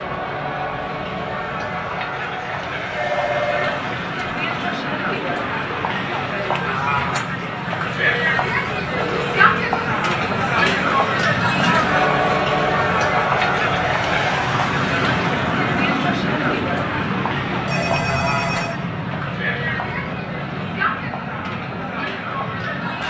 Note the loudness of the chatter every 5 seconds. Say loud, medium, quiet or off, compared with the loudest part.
medium, loud, loud, medium, medium.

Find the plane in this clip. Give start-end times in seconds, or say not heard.
0.0-23.0.